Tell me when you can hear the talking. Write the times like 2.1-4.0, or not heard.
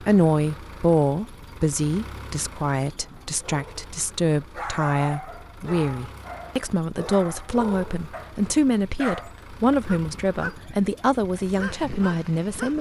0.0-12.7.